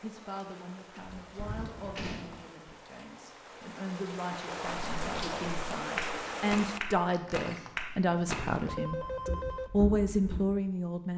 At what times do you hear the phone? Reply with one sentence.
The phone can be heard from 1.4 to 2.0 s and from 8.7 to 9.7 s.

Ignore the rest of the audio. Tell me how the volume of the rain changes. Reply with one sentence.
The loudness of the rain goes up.